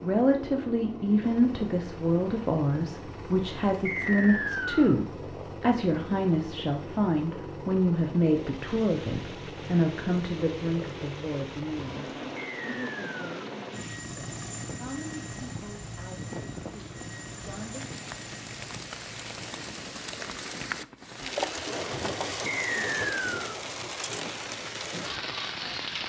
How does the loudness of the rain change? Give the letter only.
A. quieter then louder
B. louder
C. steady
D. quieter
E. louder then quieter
B.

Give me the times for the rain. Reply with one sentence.
The rain can be heard from 8.2 to 26.0 s.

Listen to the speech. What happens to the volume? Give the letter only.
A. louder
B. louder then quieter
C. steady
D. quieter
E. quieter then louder
D.